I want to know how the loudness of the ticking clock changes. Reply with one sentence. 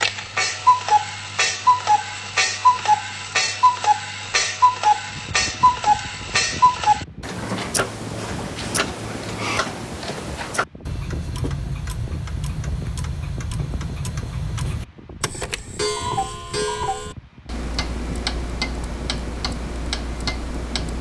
The loudness of the ticking clock goes down.